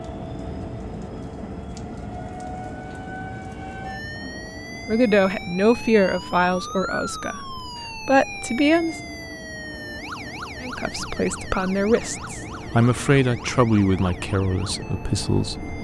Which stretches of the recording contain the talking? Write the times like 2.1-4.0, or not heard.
4.8-8.9, 10.6-15.7.